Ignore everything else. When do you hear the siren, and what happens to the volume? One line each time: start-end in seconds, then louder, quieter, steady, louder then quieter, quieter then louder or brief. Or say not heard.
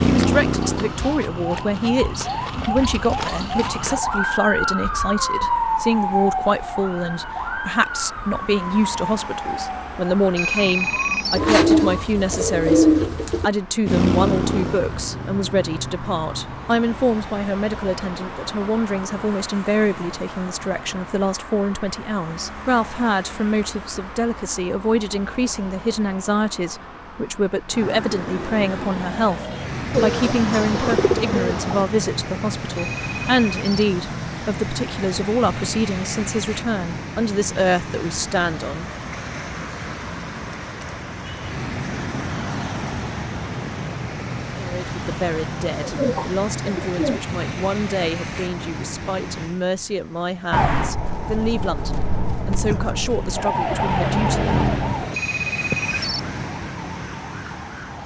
0.0-12.1 louder then quieter
50.5-58.0 louder then quieter.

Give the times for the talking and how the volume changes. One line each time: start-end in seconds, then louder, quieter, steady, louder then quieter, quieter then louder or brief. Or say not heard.
0.1-38.9 steady
44.5-54.4 steady.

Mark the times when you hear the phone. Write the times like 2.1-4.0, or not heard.
10.3-11.4, 32.8-33.9, 55.1-56.2.